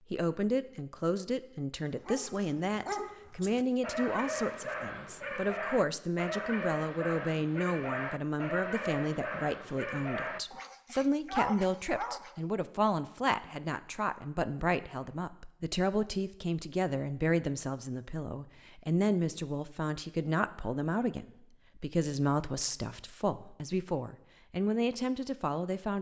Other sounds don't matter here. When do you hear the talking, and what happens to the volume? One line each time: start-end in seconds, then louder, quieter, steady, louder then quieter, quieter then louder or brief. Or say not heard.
0.1-25.9 steady.